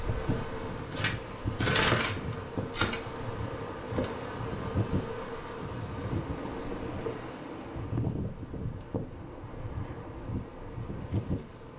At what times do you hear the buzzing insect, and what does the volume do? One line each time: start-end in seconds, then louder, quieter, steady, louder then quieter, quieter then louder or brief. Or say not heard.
0.0-11.7 quieter.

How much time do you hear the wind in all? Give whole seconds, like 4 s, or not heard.
12 s.